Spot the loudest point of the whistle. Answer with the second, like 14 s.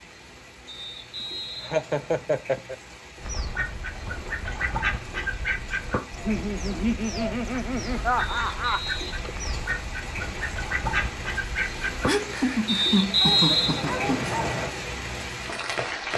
13 s.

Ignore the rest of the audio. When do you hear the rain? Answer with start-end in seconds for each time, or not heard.
0.0-16.1.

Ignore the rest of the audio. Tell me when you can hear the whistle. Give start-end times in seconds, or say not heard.
0.7-2.3, 8.2-9.2, 12.7-14.7.